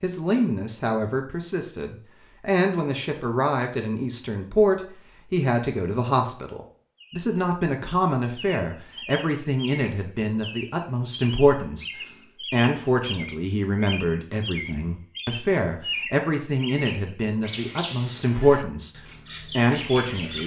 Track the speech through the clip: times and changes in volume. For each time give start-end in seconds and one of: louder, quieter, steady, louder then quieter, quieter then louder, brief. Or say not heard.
0.0-20.4 steady.